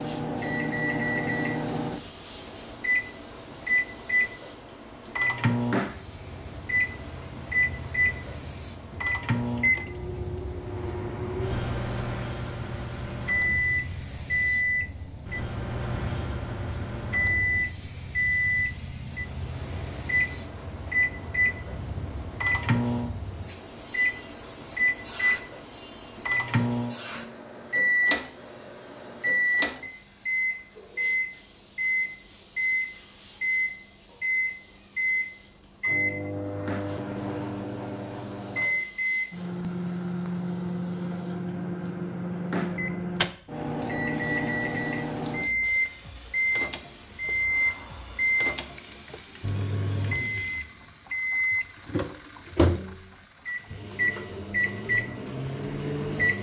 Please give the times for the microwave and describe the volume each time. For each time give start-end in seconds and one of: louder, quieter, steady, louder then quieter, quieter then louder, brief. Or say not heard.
0.0-56.3 steady.